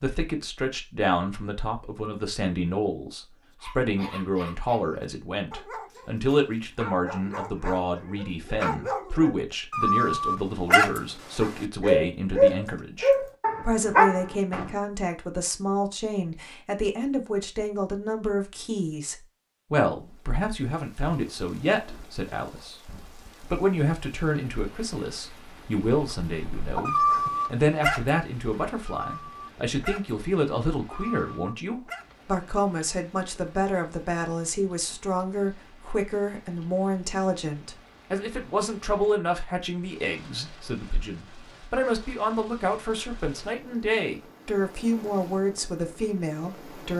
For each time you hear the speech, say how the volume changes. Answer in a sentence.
The speech can be heard from 0.0 to 46.9 s, at a steady volume.